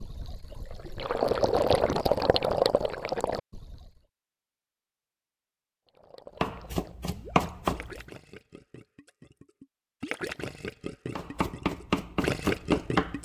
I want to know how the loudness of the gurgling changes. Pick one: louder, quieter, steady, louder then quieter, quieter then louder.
quieter then louder.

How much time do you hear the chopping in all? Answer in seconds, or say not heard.
4 s.